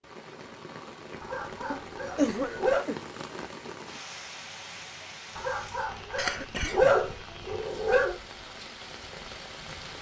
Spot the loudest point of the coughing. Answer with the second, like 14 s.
2 s.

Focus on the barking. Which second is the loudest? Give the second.
7 s.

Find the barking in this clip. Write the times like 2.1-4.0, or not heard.
1.2-2.9, 5.3-8.2.